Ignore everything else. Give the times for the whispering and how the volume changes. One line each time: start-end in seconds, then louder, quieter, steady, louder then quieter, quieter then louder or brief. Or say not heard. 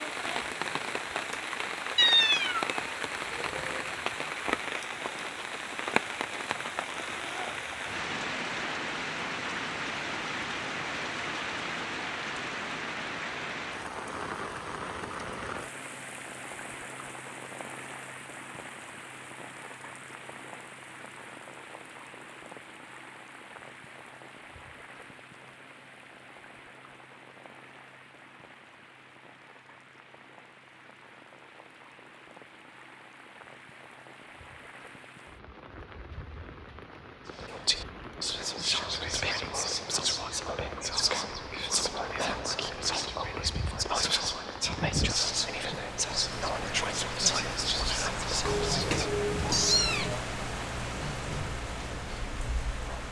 37.4-49.1 steady.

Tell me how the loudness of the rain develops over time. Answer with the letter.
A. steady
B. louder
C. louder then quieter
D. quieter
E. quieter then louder
E.